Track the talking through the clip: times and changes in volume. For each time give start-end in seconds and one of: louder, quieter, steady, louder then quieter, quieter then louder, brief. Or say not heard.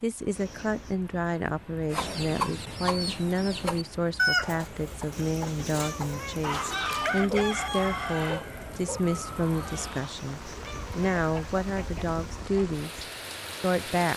0.0-14.1 steady.